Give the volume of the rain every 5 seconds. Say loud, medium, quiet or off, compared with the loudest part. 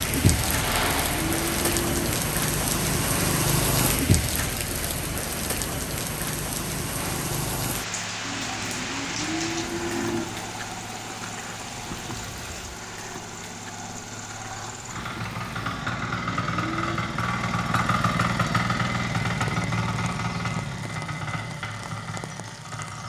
loud, medium, quiet, quiet, quiet.